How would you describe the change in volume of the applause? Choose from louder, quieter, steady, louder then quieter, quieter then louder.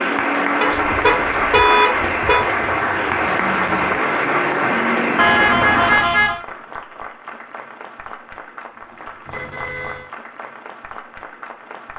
quieter.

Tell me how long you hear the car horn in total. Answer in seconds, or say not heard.
4 s.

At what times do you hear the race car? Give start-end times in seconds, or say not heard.
0.0-6.2.